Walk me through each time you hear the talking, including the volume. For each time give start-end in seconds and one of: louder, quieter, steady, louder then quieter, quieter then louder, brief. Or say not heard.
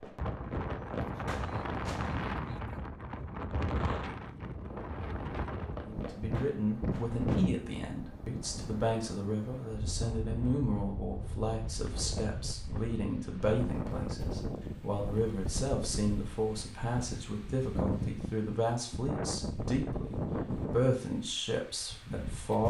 5.8-22.6 steady.